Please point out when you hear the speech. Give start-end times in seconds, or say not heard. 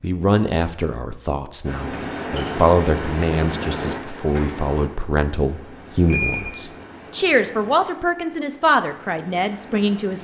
0.0-10.2.